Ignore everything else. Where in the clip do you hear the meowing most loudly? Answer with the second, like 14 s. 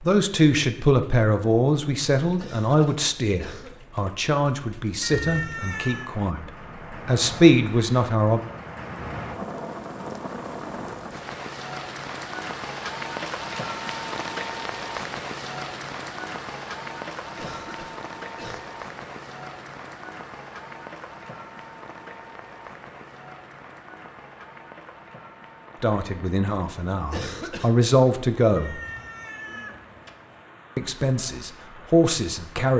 5 s.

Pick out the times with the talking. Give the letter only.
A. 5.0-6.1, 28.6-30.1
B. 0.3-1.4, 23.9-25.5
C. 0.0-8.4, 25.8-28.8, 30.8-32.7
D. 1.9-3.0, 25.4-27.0
C.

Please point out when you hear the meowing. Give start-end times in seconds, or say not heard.
5.0-6.1, 28.6-30.1.